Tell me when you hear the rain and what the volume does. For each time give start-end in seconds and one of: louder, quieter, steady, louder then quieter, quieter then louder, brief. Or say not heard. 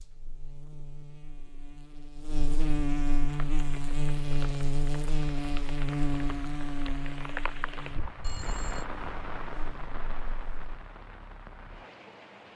3.2-12.5 louder then quieter.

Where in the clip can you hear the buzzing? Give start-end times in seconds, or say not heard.
0.0-10.6.